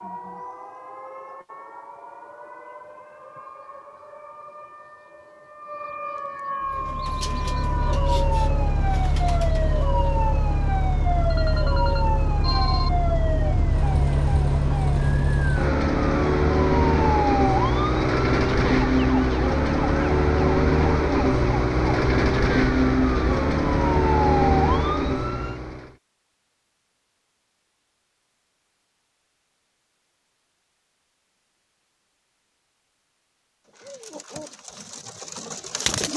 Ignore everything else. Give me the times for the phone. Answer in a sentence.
You can hear the phone from 11.3 to 12.9 s.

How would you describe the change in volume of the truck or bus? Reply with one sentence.
The volume of the truck or bus goes up.